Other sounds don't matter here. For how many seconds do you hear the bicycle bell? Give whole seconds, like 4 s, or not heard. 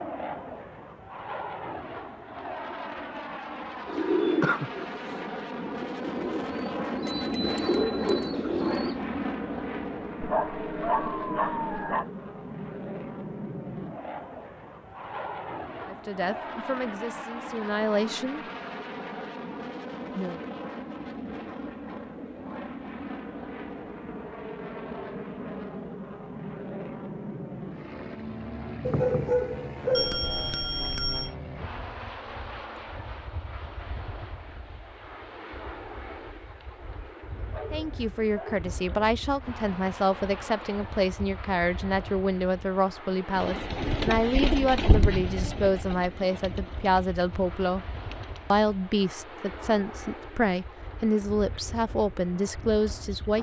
3 s.